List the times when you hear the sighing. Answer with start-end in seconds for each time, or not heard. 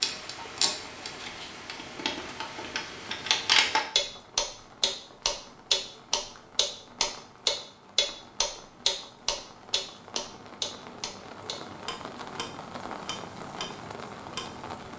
not heard.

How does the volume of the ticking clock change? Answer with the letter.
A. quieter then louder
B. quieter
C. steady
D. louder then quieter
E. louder
D.